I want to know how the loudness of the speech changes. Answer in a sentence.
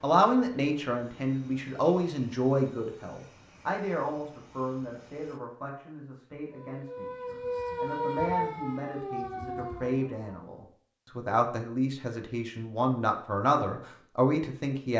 The volume of the speech goes down, then up.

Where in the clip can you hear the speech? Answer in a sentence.
You can hear the speech from 0.0 to 14.9 s.